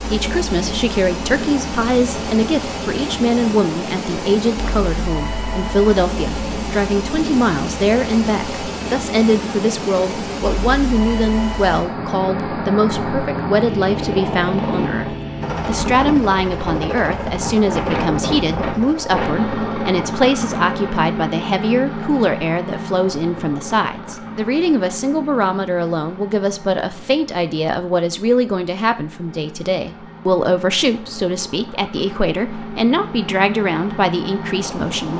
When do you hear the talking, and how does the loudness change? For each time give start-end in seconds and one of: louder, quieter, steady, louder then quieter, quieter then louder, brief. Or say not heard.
0.1-35.1 steady.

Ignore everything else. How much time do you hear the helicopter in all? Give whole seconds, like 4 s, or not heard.
35 s.